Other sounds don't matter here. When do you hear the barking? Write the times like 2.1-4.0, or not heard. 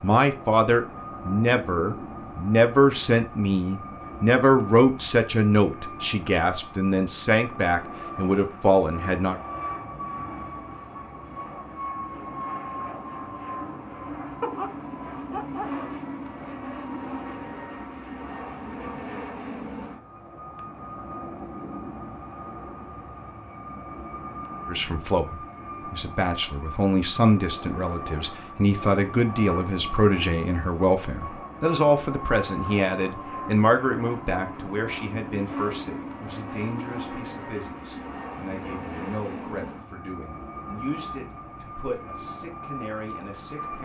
14.4-15.8.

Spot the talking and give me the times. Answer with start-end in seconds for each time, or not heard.
0.0-9.4, 24.6-43.8.